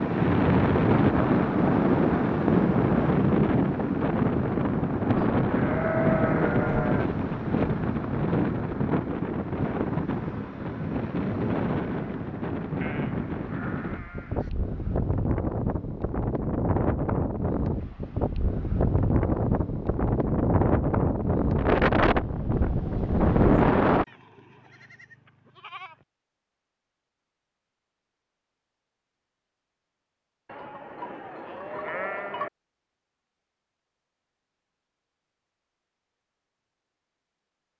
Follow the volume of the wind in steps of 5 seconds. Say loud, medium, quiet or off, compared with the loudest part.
loud, loud, medium, medium, loud, off, off, off.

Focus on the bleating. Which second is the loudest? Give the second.
6 s.